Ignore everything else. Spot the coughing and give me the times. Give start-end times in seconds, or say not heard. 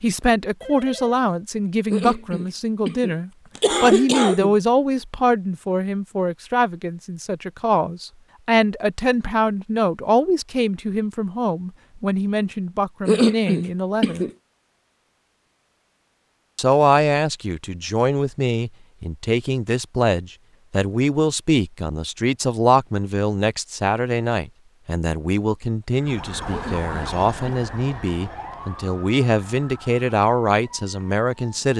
1.9-4.5, 13.1-14.3, 26.5-27.6.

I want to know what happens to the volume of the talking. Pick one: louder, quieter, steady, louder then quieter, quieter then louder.
steady.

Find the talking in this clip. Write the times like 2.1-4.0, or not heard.
0.0-14.2, 16.6-31.7.